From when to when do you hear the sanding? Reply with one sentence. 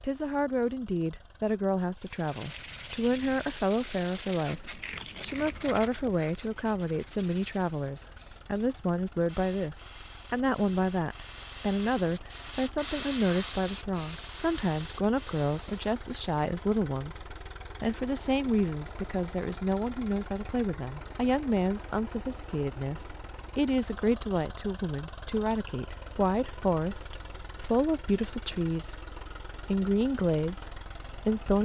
The sanding can be heard from 2.0 to 8.0 s.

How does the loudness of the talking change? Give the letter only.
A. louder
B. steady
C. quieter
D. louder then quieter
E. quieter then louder
B.